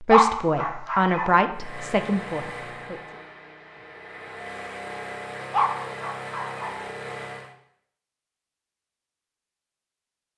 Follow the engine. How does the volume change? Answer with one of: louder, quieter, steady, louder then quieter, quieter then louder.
quieter then louder.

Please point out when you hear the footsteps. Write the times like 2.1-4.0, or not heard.
not heard.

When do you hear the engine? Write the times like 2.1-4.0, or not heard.
1.5-7.5.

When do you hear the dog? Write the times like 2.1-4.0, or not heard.
0.1-1.4, 5.5-6.8.